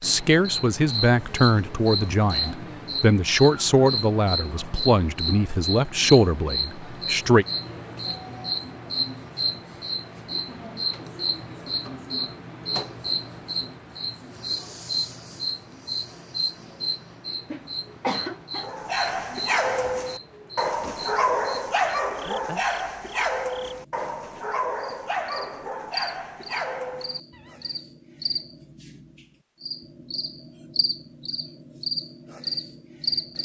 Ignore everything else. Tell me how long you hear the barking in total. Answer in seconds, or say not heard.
9 s.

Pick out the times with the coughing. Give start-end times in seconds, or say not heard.
17.5-18.7.